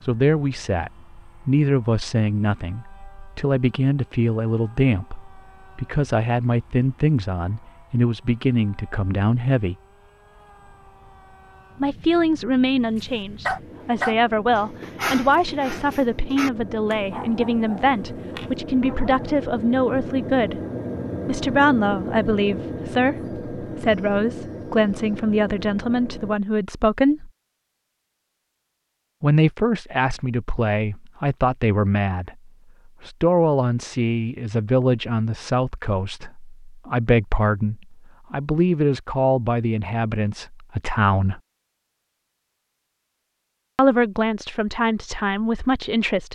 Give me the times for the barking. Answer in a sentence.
The barking can be heard from 12.9 to 19.4 s.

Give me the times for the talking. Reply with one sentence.
The talking can be heard from 0.1 to 9.8 s, from 11.8 to 20.6 s, from 21.2 to 27.3 s, from 29.2 to 41.4 s and from 43.8 to 46.2 s.